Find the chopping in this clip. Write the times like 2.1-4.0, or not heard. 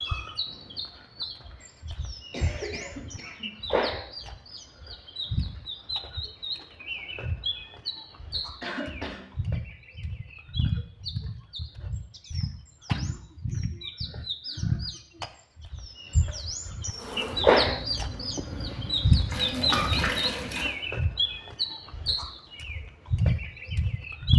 not heard.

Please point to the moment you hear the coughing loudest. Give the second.
20 s.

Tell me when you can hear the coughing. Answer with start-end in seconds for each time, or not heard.
2.3-3.8, 8.6-9.3, 19.3-20.7.